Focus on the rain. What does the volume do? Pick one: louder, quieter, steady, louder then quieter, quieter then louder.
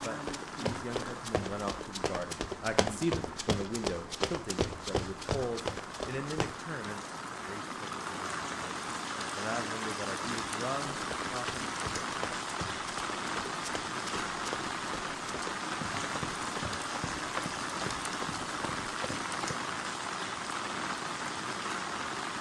louder.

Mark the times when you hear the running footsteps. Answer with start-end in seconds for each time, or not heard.
0.0-6.6, 11.0-19.6.